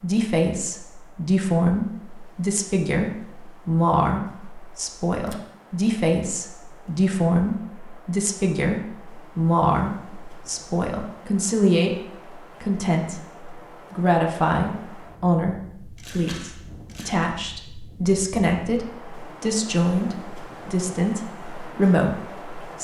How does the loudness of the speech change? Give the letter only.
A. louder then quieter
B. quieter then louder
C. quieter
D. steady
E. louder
D.